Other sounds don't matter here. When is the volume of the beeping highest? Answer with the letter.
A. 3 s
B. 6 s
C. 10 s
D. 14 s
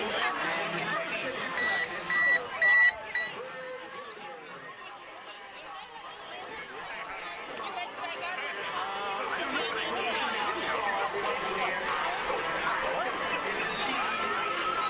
A.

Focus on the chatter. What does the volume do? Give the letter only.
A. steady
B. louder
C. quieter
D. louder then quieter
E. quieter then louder
E.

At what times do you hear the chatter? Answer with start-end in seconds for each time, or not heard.
0.0-14.8.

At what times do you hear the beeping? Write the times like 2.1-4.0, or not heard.
1.6-3.3.